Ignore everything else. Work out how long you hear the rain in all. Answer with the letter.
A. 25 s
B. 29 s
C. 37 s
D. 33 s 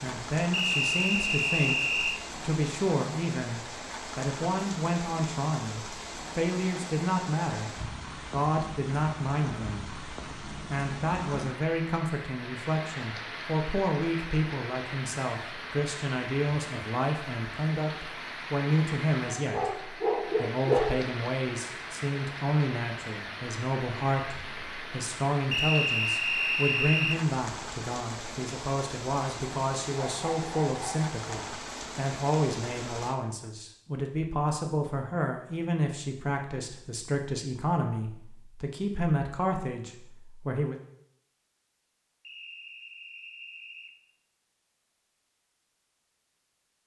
D.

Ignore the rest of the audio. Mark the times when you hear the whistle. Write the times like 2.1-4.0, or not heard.
0.5-2.2, 25.5-27.2, 42.2-44.0.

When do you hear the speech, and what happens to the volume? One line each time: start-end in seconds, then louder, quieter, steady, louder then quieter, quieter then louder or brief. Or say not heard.
0.0-40.8 steady.